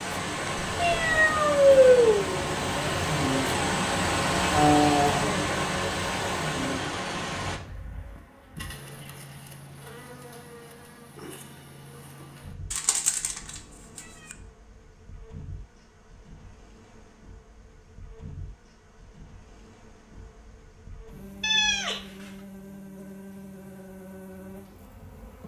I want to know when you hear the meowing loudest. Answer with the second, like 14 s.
2 s.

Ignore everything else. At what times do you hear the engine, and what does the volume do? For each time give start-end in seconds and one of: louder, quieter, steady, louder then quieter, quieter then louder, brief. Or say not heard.
0.0-7.6 louder then quieter.